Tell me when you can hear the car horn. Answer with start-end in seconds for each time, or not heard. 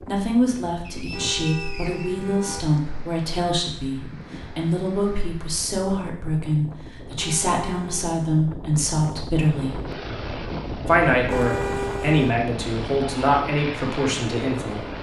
1.1-2.6, 7.2-8.1, 11.2-12.4.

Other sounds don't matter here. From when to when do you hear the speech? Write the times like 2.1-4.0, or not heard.
0.0-9.8, 10.8-14.8.